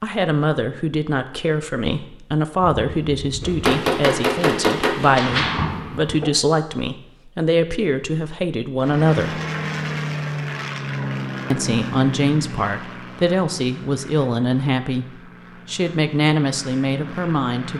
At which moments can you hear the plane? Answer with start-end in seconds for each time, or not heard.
8.8-17.7.